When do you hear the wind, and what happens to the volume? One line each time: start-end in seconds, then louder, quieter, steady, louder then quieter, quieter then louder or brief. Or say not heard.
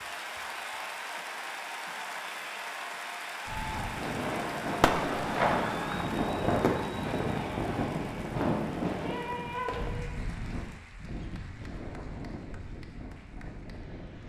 3.5-14.2 quieter.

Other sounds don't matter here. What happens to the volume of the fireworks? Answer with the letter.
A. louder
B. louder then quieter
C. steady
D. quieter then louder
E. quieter
D.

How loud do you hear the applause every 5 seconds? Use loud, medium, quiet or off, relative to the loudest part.
loud, loud, quiet.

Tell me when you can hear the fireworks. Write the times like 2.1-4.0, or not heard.
4.8-10.2.